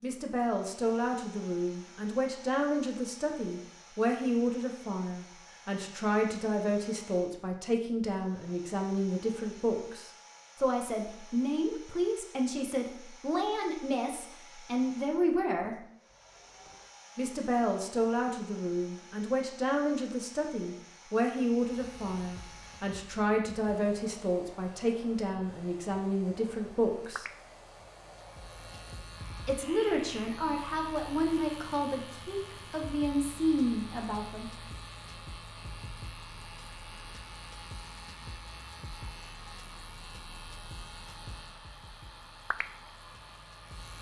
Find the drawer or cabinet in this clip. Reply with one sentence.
The drawer or cabinet can be heard from 16.1 to 16.9 s.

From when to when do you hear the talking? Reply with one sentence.
The talking can be heard from 0.0 to 15.8 s, from 17.1 to 27.2 s and from 29.4 to 34.5 s.